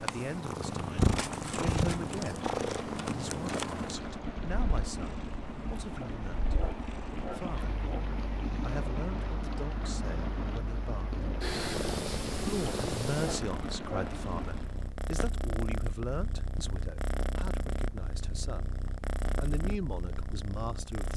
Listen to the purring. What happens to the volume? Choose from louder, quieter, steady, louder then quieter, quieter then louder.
quieter then louder.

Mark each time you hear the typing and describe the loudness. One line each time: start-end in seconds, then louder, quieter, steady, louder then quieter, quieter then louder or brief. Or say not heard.
not heard.